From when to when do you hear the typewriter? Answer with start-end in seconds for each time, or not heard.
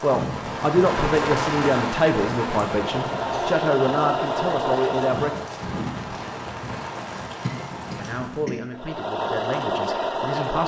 not heard.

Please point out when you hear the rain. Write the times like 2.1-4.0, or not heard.
0.0-8.6.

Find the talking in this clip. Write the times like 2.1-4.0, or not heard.
0.0-5.7, 8.0-10.6.